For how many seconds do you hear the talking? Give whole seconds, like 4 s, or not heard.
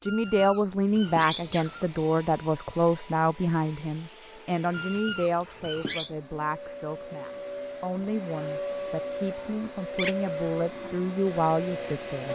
12 s.